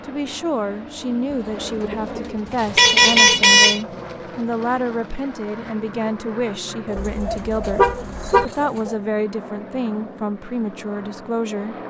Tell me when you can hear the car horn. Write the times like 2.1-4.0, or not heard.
2.8-3.8, 7.0-8.4.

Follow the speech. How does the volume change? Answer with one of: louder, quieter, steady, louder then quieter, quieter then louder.
steady.